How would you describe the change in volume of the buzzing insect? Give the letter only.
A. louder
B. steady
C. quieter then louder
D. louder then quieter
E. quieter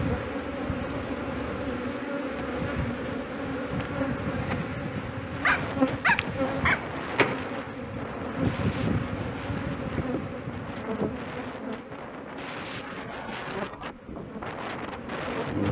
E.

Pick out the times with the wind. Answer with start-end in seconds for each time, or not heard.
5.2-15.6.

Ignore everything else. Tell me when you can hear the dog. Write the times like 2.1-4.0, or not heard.
5.4-6.8.